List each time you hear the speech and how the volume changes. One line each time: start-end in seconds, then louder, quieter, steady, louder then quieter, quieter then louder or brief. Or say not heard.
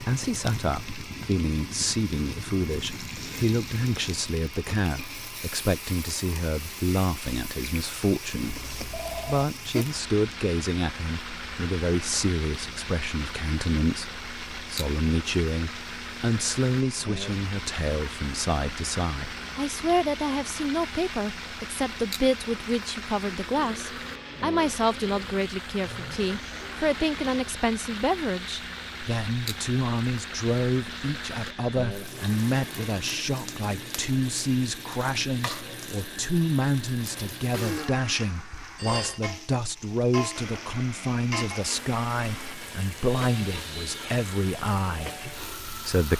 0.0-46.1 steady.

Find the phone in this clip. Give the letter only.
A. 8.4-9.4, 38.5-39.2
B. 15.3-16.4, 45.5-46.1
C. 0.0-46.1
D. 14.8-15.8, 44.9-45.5
A.